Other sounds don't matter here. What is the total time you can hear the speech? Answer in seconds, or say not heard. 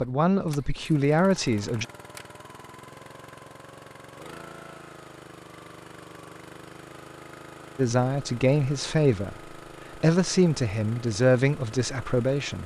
6 s.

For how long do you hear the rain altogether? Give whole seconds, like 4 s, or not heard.
not heard.